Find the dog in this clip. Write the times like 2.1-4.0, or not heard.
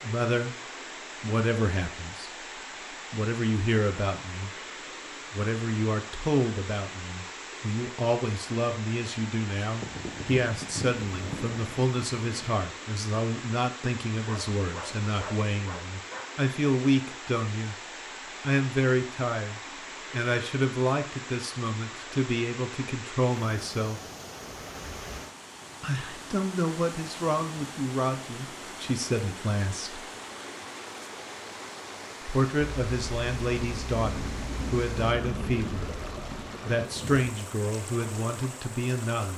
14.2-16.2.